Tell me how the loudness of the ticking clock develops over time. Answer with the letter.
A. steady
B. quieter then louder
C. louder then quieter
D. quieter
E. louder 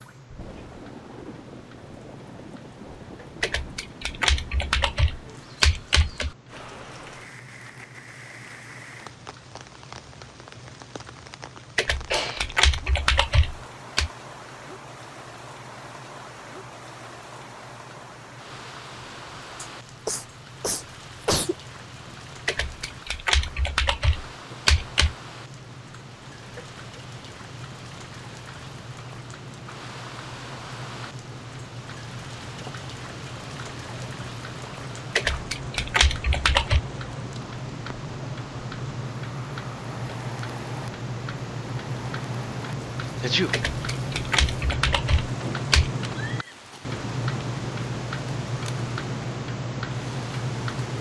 E.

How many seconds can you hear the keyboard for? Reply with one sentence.
The keyboard can be heard for 12 seconds in total.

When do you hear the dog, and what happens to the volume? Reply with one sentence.
You can't hear the dog here.